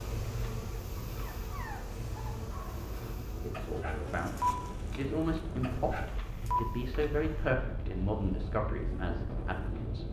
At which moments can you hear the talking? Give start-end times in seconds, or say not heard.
3.4-10.0.